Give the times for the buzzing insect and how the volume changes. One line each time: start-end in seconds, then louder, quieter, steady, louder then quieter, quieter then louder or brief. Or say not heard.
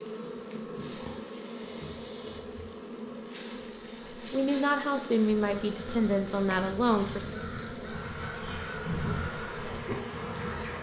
0.0-10.7 steady.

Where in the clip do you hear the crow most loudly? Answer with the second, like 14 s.
9 s.